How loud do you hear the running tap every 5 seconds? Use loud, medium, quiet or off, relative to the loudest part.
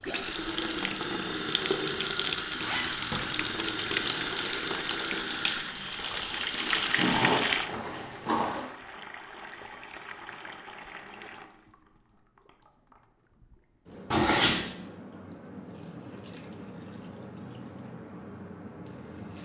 loud, loud, quiet, quiet.